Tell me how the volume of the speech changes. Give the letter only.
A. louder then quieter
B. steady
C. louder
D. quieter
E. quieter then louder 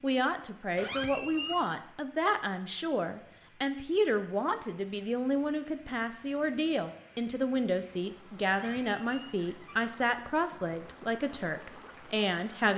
B.